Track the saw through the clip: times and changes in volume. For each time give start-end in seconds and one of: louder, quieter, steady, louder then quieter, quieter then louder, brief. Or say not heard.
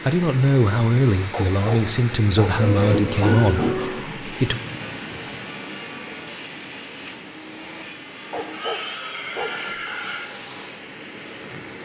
2.5-10.8 quieter.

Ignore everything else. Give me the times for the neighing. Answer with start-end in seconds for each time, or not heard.
3.1-4.2, 8.5-10.2.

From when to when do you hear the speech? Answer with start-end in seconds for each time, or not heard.
0.0-4.6.